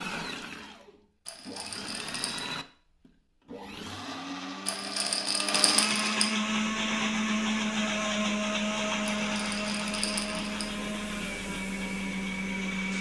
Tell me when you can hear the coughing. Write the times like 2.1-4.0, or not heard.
not heard.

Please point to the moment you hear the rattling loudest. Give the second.
6 s.